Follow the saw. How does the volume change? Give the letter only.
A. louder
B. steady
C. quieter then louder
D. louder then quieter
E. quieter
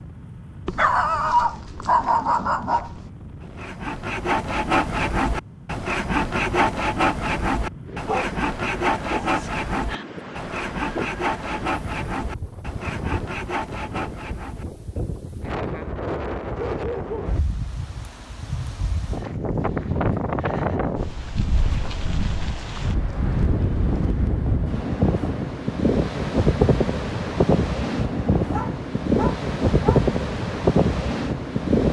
E.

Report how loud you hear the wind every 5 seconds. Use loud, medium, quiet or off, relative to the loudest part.
quiet, quiet, quiet, medium, medium, loud, loud.